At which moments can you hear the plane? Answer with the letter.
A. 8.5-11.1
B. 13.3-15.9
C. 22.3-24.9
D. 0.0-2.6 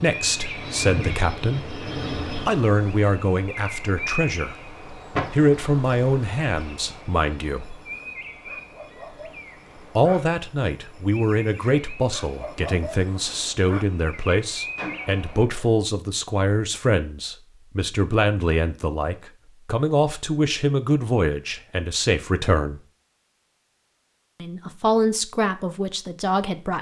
D.